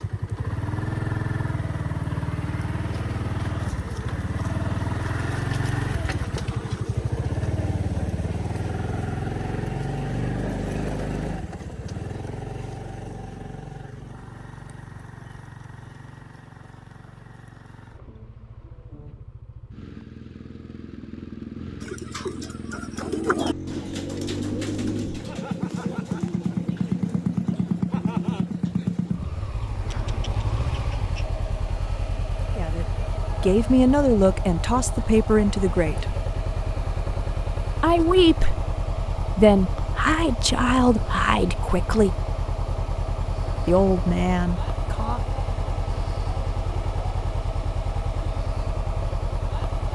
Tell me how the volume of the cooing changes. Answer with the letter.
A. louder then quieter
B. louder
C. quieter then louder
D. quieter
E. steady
D.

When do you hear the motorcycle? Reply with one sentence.
The motorcycle can be heard from 0.0 to 49.9 s.